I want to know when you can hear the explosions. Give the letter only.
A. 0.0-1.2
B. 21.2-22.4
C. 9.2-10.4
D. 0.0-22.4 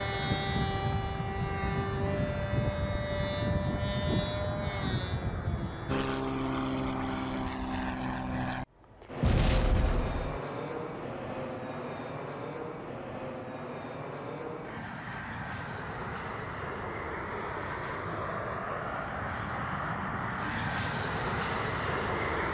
C.